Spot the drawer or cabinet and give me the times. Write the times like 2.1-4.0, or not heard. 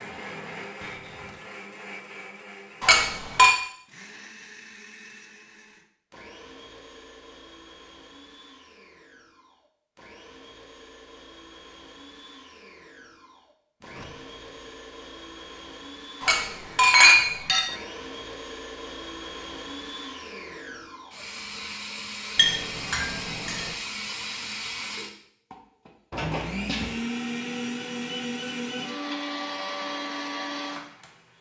0.8-1.4, 13.8-14.8, 26.1-26.9.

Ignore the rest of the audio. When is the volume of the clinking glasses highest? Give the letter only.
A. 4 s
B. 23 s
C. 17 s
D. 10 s
C.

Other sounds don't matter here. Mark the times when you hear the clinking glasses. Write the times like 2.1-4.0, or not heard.
2.8-3.5, 16.2-17.6, 22.4-23.7.